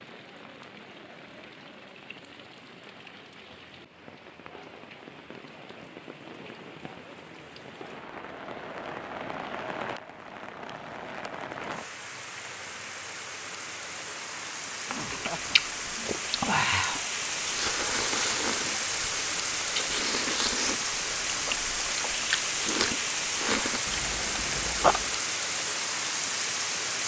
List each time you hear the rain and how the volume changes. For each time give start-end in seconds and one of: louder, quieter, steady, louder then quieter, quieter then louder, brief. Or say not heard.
0.0-27.0 louder.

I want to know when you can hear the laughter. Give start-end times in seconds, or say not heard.
14.8-16.1.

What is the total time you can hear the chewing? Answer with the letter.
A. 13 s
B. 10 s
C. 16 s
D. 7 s
B.